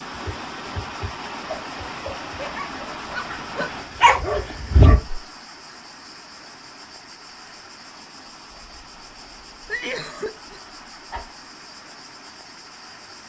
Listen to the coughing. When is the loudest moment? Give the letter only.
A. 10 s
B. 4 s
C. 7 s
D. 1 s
A.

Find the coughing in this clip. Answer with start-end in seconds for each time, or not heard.
3.2-3.8, 9.7-10.6.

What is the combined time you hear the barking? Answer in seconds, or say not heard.
3 s.